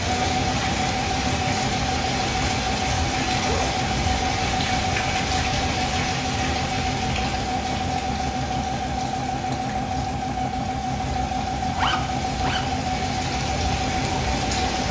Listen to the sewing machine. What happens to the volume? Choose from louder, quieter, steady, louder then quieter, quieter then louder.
steady.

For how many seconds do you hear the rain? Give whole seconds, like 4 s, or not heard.
15 s.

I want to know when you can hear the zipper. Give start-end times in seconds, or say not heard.
3.4-3.8, 11.7-12.7.